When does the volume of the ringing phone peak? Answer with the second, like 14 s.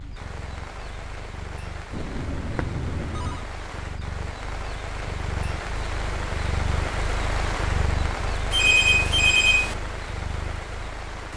9 s.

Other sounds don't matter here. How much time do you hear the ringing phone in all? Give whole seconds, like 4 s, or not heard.
3 s.